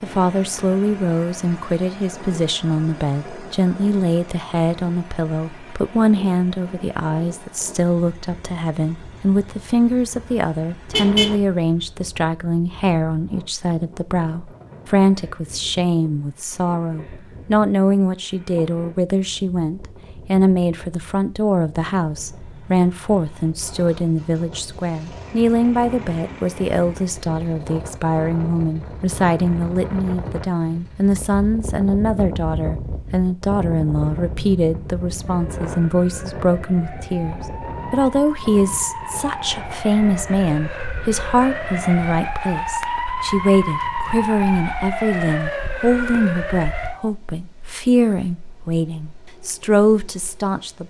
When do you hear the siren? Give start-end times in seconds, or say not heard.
35.1-47.1.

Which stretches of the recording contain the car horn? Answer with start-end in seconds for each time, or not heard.
10.9-11.4.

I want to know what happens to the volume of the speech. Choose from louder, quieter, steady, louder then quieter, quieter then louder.
steady.